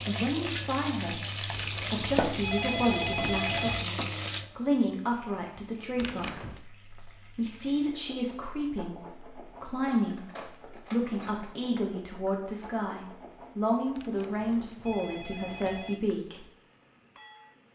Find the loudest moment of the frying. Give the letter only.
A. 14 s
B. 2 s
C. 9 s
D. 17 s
B.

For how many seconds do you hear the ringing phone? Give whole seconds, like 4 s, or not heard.
5 s.